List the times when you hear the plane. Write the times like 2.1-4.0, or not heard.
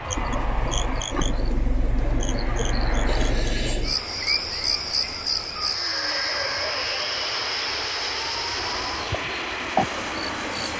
0.0-3.6, 5.5-10.7.